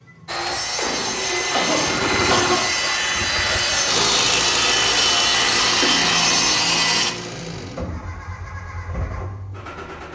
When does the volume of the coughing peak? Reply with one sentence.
The loudest moment of the coughing is at 2 seconds.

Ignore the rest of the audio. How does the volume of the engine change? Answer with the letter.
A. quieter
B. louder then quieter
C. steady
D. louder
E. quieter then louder
A.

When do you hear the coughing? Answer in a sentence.
The coughing can be heard from 1.5 to 2.6 s and from 5.8 to 7.0 s.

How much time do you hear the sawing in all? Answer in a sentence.
The sawing can be heard for 7 seconds in total.